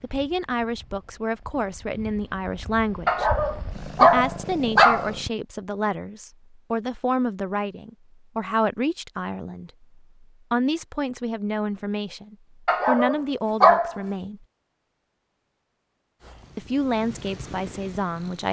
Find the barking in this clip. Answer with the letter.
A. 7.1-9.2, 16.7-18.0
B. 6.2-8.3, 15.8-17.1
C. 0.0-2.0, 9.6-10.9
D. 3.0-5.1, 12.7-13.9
D.